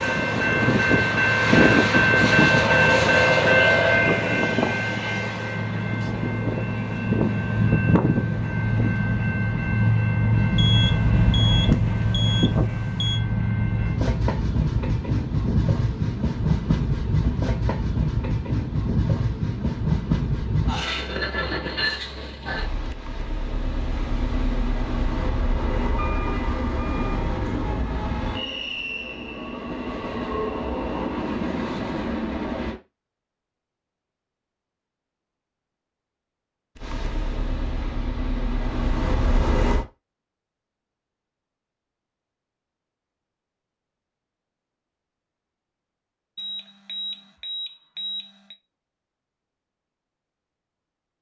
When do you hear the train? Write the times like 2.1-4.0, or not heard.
0.0-32.8, 36.8-39.9.